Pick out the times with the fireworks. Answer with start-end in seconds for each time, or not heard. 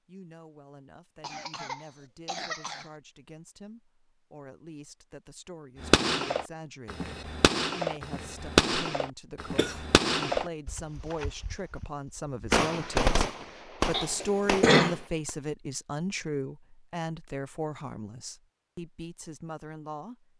5.8-15.3.